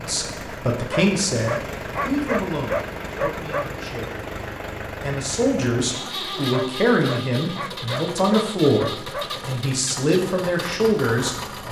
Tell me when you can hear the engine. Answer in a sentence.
The engine can be heard from 0.0 to 11.6 s.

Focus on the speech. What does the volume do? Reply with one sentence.
The volume of the speech goes down, then up.